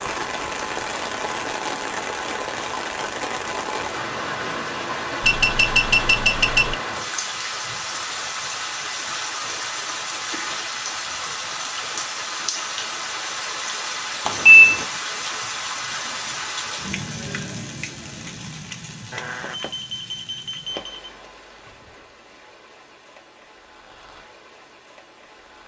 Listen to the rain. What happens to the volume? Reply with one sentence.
The loudness of the rain goes down.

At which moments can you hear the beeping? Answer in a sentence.
The beeping can be heard from 5.2 to 6.8 s, from 14.2 to 14.8 s and from 19.1 to 21.1 s.